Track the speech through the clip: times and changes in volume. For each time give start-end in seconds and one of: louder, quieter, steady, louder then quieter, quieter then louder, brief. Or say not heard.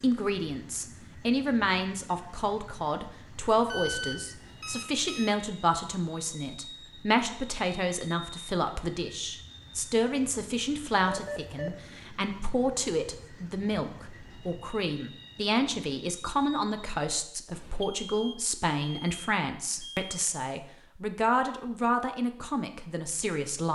0.0-23.7 steady.